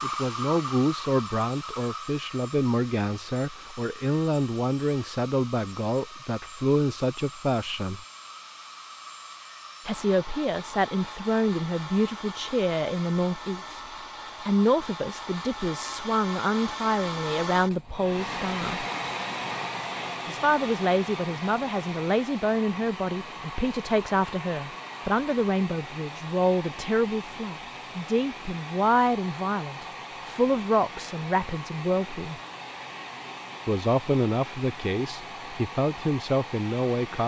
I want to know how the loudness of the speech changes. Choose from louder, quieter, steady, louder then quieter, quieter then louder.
steady.